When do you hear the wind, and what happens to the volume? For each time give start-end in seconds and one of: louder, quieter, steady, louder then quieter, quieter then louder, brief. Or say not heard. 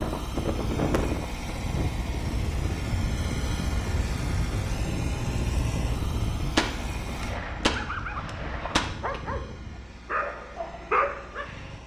0.0-10.0 quieter.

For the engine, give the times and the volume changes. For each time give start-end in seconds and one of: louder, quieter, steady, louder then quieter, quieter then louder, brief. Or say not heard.
0.0-11.8 quieter.